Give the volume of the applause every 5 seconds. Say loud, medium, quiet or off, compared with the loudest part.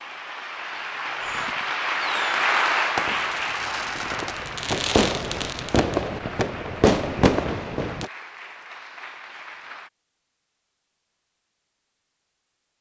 loud, quiet, off.